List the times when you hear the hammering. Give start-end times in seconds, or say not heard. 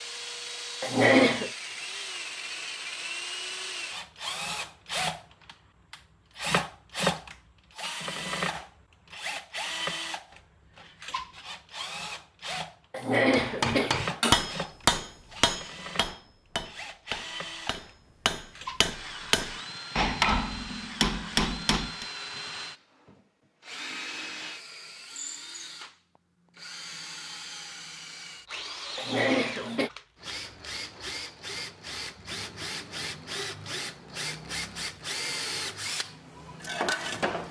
13.3-22.1.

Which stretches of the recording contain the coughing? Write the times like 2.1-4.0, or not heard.
0.8-1.5, 12.9-14.5, 28.9-29.9.